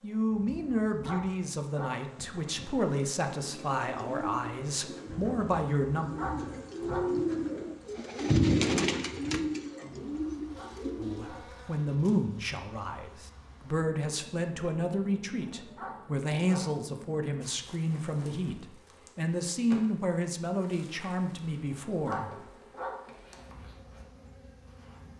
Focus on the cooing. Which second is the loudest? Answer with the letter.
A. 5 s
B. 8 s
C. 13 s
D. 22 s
B.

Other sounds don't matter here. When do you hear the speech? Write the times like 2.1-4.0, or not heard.
0.0-6.1, 10.9-22.3.